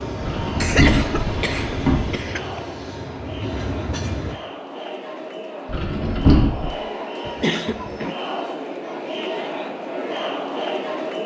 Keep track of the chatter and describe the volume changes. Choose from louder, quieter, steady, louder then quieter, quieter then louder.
louder.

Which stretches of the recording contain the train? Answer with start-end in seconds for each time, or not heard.
0.0-4.3.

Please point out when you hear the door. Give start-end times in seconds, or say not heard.
0.2-2.1, 5.7-6.7.